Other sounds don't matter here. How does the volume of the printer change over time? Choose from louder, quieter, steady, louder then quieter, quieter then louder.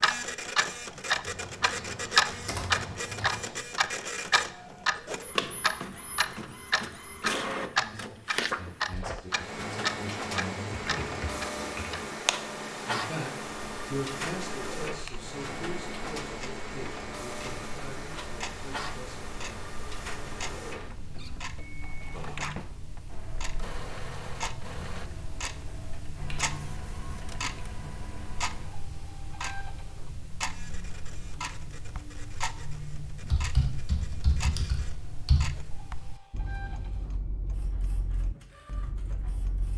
quieter.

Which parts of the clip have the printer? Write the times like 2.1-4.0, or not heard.
0.0-39.7.